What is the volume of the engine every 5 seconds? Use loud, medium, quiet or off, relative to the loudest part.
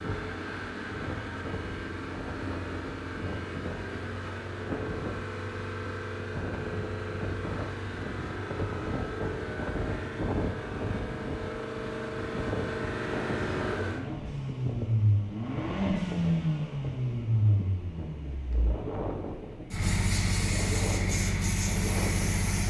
medium, medium, loud, loud, loud.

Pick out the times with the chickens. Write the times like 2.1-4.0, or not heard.
not heard.